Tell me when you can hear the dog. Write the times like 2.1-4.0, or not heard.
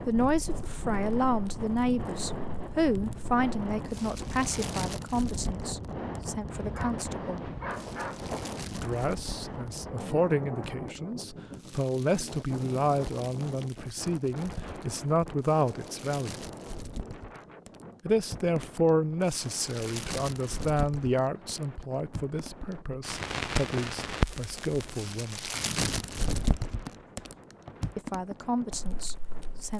6.5-8.6.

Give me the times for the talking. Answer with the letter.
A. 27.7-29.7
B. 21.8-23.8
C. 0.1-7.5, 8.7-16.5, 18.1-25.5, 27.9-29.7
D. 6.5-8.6
C.